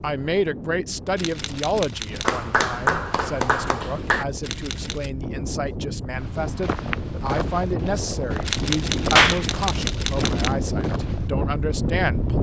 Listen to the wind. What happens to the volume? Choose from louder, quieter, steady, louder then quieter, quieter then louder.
louder.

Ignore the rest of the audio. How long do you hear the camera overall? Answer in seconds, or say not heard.
4 s.